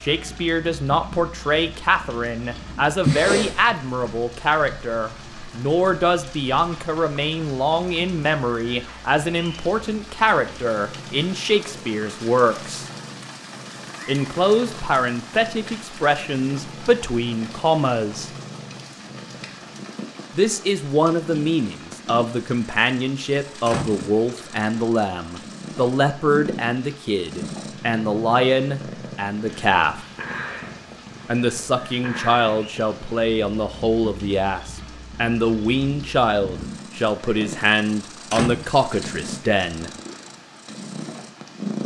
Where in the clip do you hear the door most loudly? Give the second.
3 s.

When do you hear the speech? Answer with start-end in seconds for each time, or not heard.
0.0-12.8, 14.1-18.3, 20.4-30.0, 31.2-39.9.